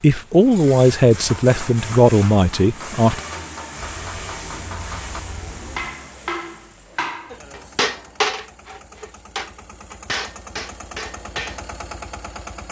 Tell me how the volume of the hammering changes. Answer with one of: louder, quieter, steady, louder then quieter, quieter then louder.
louder then quieter.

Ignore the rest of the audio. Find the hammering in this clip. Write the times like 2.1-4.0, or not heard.
1.1-11.8.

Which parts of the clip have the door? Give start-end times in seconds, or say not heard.
not heard.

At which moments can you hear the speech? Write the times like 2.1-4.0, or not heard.
0.0-3.2.